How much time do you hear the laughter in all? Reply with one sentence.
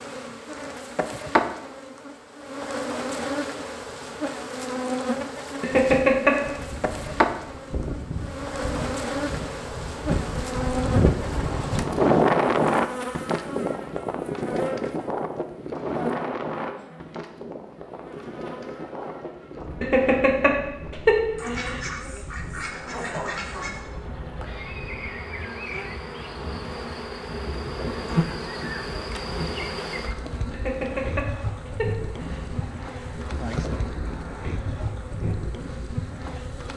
The laughter can be heard for 5 seconds in total.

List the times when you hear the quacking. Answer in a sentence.
You can hear the quacking from 21.4 to 23.8 s.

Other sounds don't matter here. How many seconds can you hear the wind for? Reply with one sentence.
The wind can be heard for 31 seconds in total.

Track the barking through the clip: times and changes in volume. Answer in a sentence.
The barking can't be heard in this clip.